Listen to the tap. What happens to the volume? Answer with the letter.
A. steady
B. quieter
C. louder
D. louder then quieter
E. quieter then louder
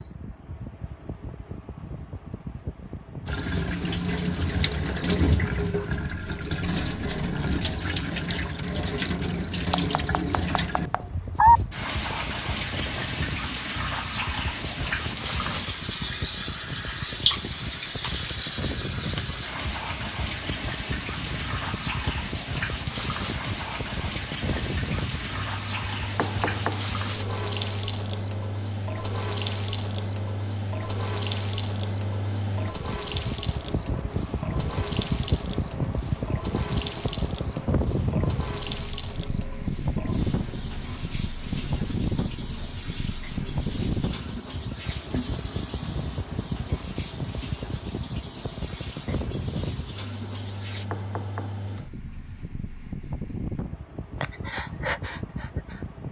B.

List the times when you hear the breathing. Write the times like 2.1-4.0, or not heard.
54.2-55.9.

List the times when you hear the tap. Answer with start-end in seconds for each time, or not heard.
3.2-50.9.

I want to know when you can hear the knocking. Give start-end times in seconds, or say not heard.
9.7-11.6, 26.1-26.9, 50.9-51.5.